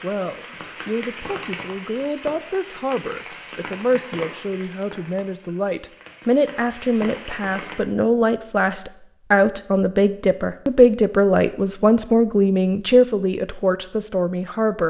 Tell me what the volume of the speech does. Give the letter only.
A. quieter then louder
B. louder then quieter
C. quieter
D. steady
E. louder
E.